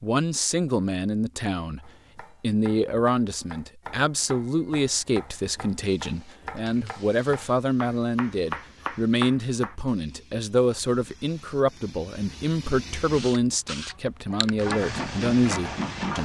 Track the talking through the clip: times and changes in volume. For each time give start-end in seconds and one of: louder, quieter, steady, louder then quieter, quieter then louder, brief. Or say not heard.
0.0-16.2 steady.